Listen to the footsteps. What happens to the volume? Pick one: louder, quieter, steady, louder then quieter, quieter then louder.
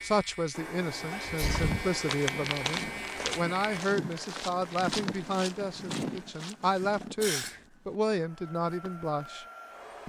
quieter.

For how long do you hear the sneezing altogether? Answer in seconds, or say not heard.
2 s.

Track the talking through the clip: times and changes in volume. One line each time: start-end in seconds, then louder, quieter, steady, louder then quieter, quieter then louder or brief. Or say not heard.
0.0-9.4 steady.